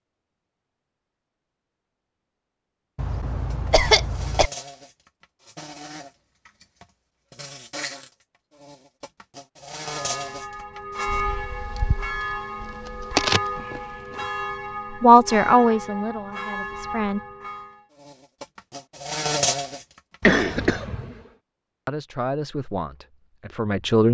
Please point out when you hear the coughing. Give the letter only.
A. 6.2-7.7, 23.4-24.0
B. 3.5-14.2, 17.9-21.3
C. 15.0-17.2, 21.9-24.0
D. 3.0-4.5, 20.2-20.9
D.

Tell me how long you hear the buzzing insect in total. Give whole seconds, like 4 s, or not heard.
14 s.